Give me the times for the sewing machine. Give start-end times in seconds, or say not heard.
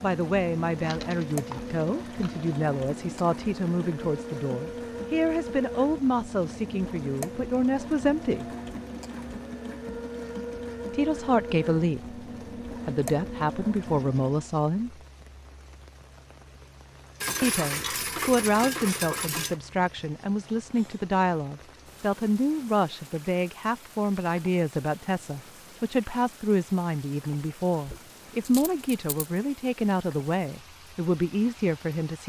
0.0-14.6.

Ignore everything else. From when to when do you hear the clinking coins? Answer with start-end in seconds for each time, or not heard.
0.7-2.5, 17.2-19.6, 27.9-29.2.